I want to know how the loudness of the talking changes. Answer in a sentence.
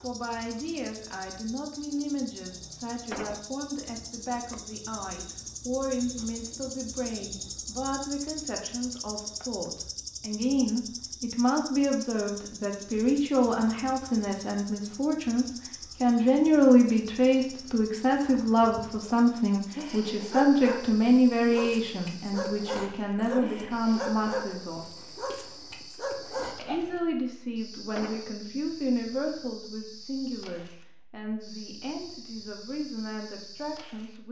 The volume of the talking goes up, then down.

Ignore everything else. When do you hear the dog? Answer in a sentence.
The dog can be heard from 19.8 to 26.9 s.